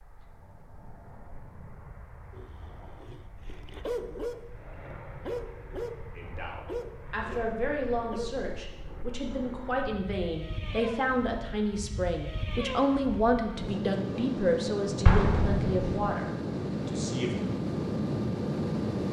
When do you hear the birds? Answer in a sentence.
You can't hear the birds here.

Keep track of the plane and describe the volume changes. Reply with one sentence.
The loudness of the plane goes up.